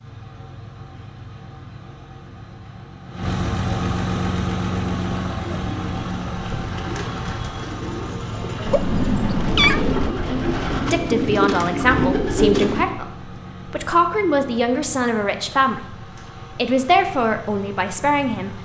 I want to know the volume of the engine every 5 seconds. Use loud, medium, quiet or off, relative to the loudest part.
loud, loud, medium, medium.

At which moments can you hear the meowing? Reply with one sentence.
The meowing can be heard from 8.7 to 10.2 s.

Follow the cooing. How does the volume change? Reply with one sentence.
The loudness of the cooing goes up.